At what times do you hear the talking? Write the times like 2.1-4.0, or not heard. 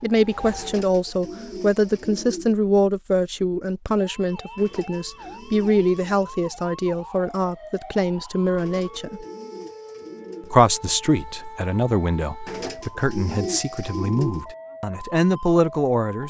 0.0-9.2, 10.5-16.2.